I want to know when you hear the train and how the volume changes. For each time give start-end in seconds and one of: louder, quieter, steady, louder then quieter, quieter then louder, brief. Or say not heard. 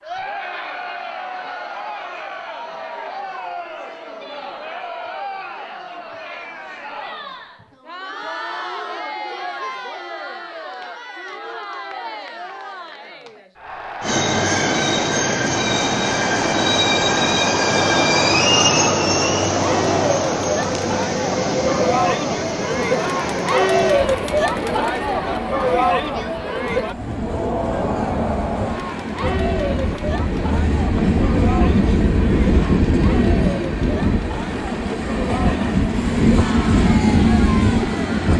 14.0-38.3 quieter then louder.